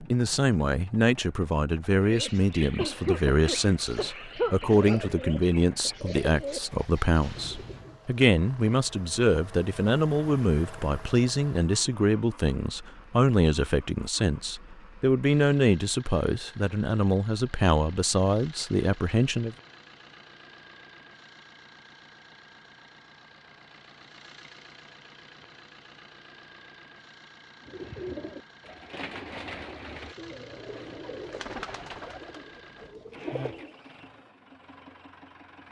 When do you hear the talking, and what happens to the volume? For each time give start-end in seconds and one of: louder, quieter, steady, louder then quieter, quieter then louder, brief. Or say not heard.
0.0-19.6 steady.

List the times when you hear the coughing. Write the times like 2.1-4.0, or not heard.
2.8-5.2.